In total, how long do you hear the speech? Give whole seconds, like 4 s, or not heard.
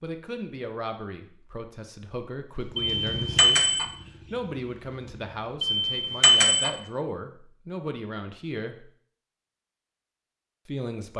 9 s.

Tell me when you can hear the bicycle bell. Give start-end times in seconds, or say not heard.
2.8-3.9, 5.6-6.7.